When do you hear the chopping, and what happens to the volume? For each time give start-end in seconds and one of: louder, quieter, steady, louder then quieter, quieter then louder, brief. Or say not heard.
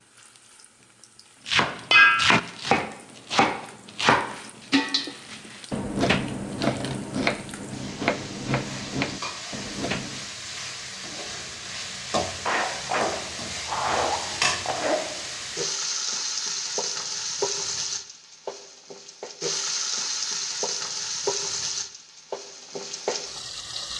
1.4-10.3 quieter.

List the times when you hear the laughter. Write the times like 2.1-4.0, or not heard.
12.4-15.1.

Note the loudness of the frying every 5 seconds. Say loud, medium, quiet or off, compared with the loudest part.
quiet, medium, loud, loud, loud.